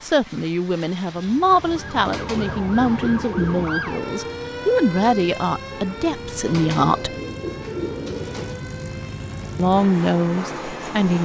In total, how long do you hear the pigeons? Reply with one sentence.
You can hear the pigeons for 4 seconds altogether.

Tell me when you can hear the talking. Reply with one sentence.
The talking can be heard from 0.0 to 7.2 s and from 9.6 to 11.2 s.